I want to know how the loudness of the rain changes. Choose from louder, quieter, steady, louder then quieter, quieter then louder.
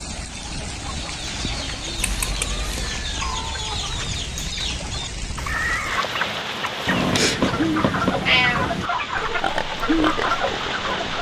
steady.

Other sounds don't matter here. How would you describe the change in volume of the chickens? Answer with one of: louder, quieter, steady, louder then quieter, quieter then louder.
louder.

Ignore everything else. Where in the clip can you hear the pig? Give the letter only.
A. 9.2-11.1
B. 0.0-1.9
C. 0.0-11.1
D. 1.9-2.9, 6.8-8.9
A.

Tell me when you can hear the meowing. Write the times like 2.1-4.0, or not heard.
1.9-2.9, 6.8-8.9.